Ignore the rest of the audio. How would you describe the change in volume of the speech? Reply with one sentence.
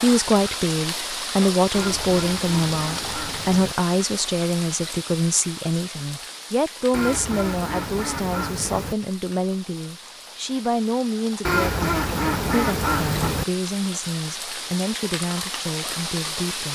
The loudness of the speech goes down.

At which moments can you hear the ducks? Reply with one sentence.
You can hear the ducks from 1.7 to 3.8 s, from 6.9 to 8.9 s and from 11.4 to 13.4 s.